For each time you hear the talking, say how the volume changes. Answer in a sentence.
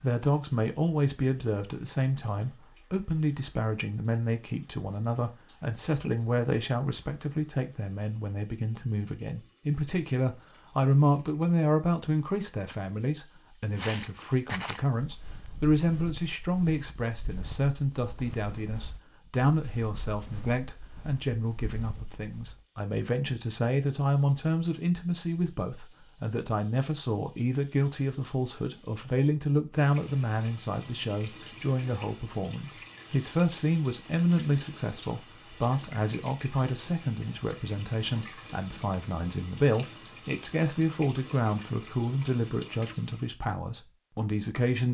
The talking can be heard from 0.0 to 44.8 s, at a steady volume.